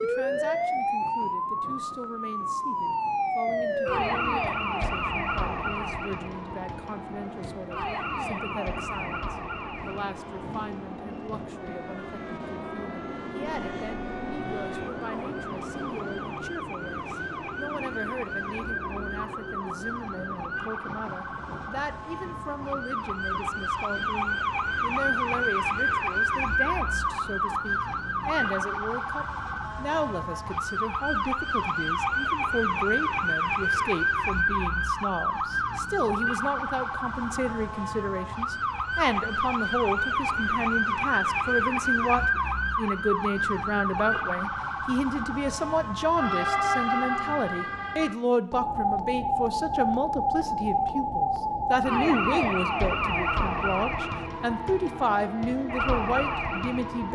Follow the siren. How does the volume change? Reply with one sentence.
The loudness of the siren goes down, then up.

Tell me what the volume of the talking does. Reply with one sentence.
The loudness of the talking goes up.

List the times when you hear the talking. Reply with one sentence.
The talking can be heard from 0.0 to 57.1 s.